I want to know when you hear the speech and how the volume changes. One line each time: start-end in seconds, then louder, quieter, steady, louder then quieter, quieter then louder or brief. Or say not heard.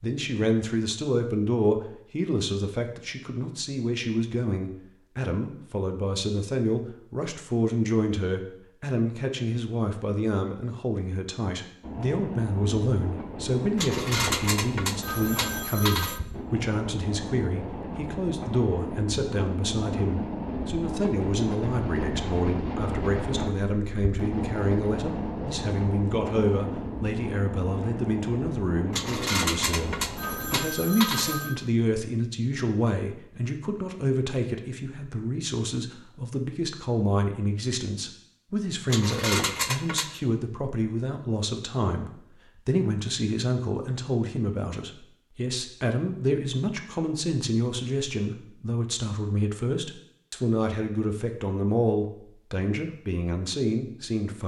0.0-54.4 steady.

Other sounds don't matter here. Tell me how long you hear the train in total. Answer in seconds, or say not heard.
19 s.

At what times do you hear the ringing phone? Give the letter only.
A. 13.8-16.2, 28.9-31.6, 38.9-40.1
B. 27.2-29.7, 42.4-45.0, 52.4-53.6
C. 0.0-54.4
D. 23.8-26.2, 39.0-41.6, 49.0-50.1
A.